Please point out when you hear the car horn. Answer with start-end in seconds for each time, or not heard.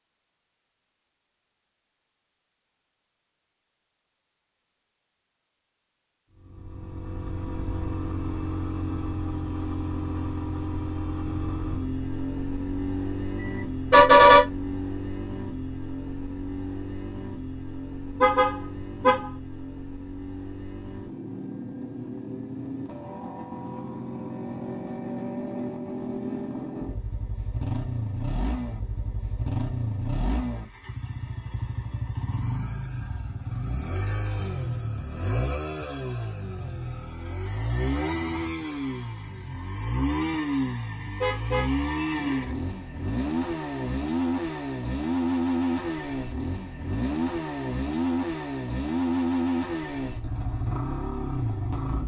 13.4-14.4, 18.2-19.3, 41.2-42.5.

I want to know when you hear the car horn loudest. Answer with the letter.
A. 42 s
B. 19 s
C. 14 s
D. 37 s
C.